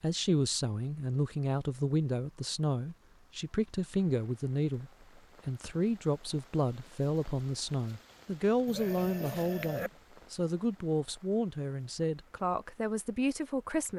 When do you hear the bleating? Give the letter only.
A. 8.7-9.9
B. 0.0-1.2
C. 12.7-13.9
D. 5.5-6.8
A.